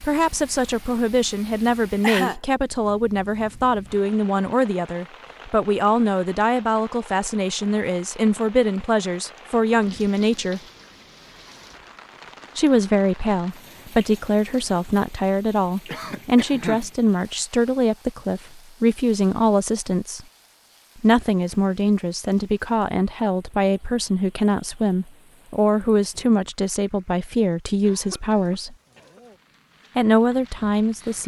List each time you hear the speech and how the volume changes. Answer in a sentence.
The speech can be heard from 0.0 to 10.6 s, at a steady volume; from 12.6 to 20.2 s, at a steady volume; from 21.0 to 28.8 s, at a steady volume; and briefly from 29.9 to 31.2 s.